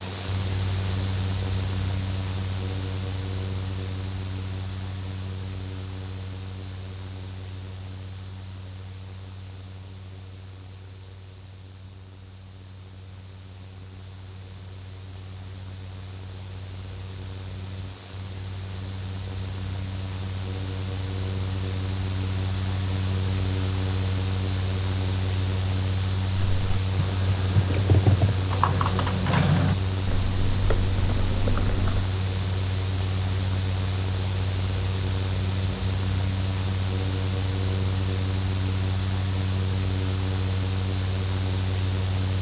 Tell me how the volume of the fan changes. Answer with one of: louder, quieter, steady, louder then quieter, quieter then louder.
quieter then louder.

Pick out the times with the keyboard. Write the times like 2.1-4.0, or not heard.
26.4-32.1.